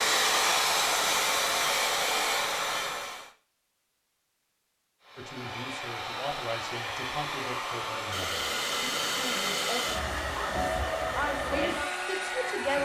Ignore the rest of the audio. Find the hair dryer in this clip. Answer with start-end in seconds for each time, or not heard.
0.0-3.3, 5.0-12.8.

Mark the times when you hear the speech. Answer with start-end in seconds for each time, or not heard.
5.2-12.8.